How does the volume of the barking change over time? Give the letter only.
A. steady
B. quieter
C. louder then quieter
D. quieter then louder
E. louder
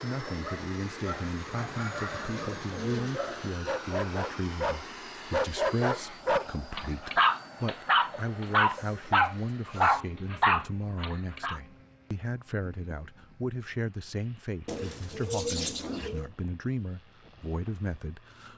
E.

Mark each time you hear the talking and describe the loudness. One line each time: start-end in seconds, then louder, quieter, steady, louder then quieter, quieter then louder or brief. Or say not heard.
0.0-18.5 steady.